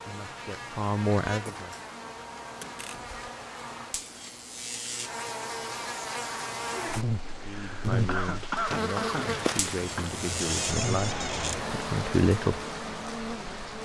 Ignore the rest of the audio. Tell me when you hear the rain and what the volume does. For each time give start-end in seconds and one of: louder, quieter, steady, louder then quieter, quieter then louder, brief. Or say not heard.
0.0-13.8 louder.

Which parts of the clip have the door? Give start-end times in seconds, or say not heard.
2.6-3.1, 10.4-11.6.